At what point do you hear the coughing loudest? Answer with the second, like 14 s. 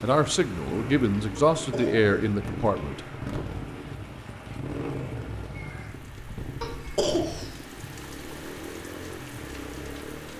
7 s.